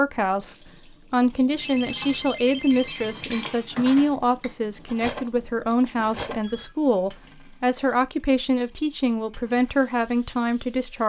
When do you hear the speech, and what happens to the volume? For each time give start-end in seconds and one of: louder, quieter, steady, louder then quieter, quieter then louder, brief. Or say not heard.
0.0-11.0 steady.